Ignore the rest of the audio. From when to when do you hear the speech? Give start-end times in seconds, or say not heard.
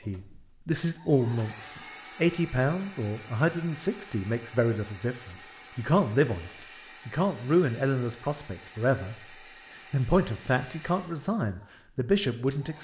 0.1-9.2, 9.9-12.7.